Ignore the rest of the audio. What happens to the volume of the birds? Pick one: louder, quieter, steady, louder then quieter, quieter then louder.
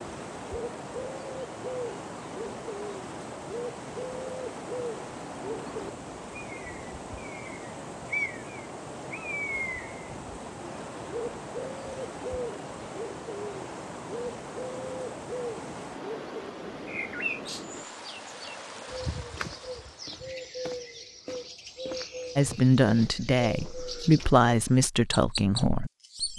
steady.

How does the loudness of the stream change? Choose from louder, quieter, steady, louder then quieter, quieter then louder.
steady.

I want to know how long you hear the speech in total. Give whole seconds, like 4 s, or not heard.
4 s.